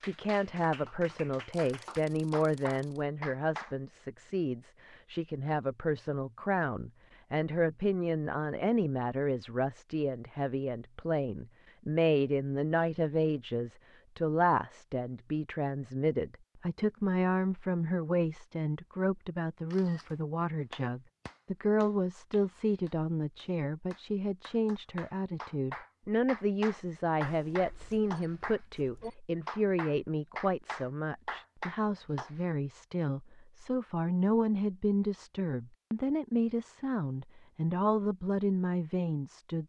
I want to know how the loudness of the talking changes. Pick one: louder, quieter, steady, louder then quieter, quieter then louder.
steady.